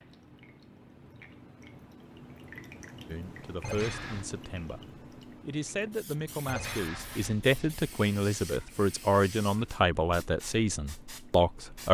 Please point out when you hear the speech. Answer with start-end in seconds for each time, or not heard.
3.1-4.8, 5.4-11.8.